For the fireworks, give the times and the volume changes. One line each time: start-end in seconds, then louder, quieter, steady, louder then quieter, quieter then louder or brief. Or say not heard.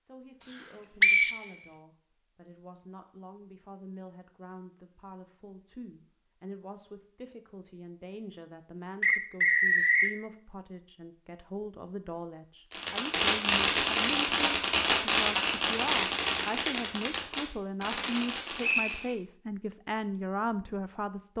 12.7-19.1 quieter.